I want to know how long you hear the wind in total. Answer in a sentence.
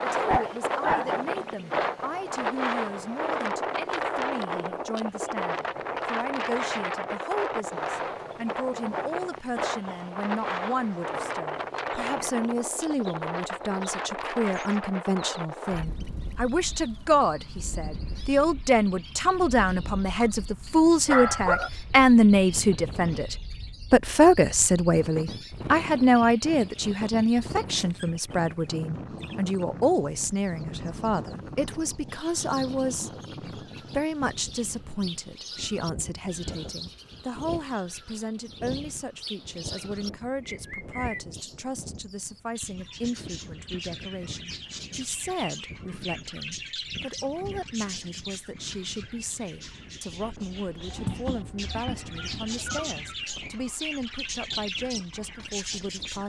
You can hear the wind for 56 seconds altogether.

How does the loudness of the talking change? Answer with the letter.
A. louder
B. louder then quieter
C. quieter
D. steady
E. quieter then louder
B.